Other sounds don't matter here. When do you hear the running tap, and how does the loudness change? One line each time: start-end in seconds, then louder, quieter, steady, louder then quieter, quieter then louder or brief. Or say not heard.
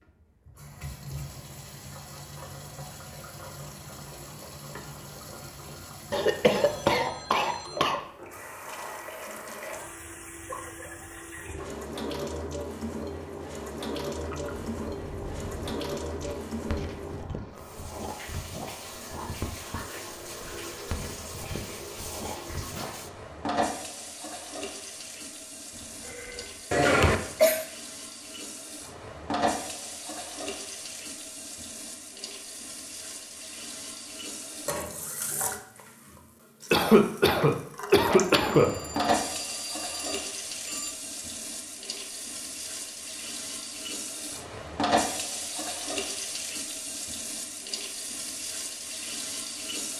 0.0-49.9 louder.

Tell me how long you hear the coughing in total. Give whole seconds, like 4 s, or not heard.
5 s.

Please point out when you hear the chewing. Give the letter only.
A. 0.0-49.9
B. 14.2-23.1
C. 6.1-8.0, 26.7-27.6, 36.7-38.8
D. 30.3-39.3
B.